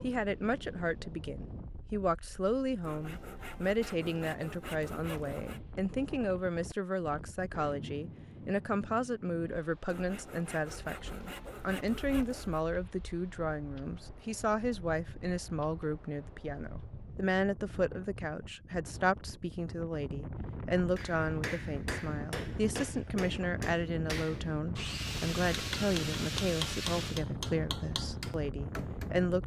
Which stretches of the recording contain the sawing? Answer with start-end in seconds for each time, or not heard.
2.8-5.6, 9.8-12.6, 24.8-27.2.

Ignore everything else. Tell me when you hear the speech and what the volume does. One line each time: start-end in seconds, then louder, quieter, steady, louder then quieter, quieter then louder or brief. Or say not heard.
0.0-29.4 steady.